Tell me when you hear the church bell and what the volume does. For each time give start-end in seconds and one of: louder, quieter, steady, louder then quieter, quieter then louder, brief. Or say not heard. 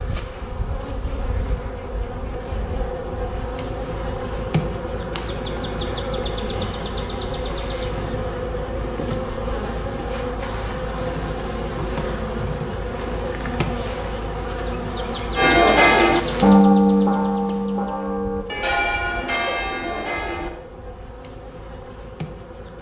15.3-20.5 quieter.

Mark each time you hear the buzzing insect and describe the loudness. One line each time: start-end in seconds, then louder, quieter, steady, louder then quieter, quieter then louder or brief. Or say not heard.
0.0-22.7 quieter.